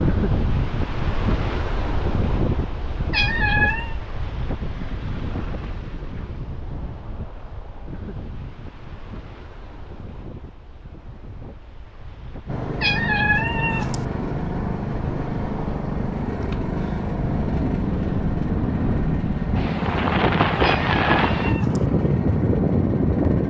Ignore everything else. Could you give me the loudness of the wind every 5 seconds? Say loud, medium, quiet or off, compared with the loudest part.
medium, quiet, quiet, medium, loud.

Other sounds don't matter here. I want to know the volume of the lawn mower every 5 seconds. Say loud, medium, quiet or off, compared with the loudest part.
off, off, loud, loud, loud.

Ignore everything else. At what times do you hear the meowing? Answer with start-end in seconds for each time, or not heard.
3.1-4.0, 12.8-14.1, 20.6-21.9.